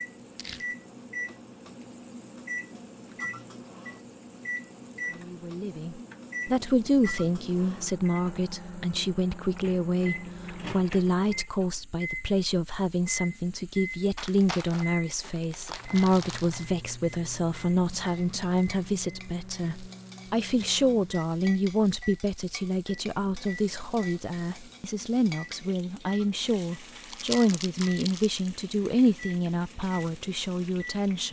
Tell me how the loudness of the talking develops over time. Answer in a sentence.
The volume of the talking stays about the same.